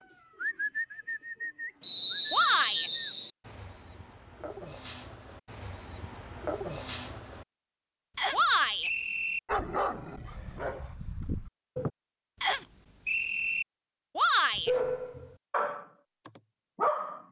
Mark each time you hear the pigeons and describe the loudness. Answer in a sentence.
You can hear the pigeons from 0.0 to 7.5 s, getting quieter then louder.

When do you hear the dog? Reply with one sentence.
You can hear the dog from 9.4 to 11.9 s and from 14.6 to 17.2 s.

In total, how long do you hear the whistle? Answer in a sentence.
The whistle can be heard for 4 seconds in total.